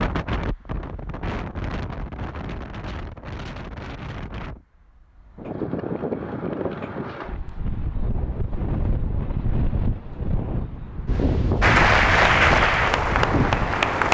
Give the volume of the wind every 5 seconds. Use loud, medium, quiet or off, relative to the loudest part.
medium, loud, loud.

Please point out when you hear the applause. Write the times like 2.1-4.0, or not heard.
11.6-14.1.